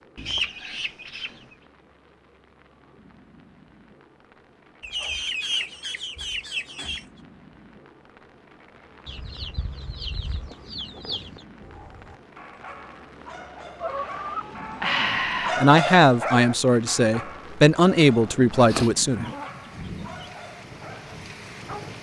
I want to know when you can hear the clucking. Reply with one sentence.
The clucking can be heard from 0.1 to 1.6 s, from 4.8 to 7.0 s, from 9.1 to 11.4 s, from 13.8 to 15.6 s and from 18.7 to 19.6 s.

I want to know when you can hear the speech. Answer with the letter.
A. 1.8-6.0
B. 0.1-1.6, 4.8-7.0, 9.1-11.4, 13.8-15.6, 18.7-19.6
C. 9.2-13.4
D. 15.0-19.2
D.